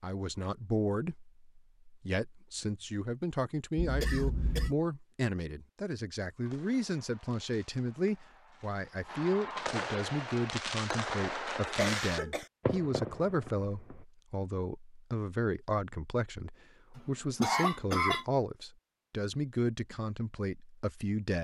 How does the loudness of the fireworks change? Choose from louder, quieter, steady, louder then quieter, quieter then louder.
louder.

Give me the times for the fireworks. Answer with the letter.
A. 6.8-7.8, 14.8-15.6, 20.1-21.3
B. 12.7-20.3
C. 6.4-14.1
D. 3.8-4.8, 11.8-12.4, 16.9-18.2
C.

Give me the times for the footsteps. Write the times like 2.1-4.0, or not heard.
not heard.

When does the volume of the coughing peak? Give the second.
18 s.